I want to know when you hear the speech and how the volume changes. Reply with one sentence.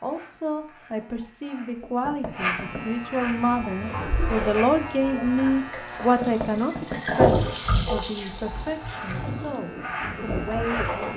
The speech can be heard from 0.0 to 11.1 s, getting louder then quieter.